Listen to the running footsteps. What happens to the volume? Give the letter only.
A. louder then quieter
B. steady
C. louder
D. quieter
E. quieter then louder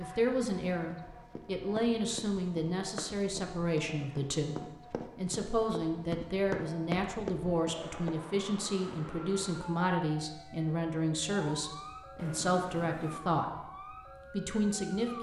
C.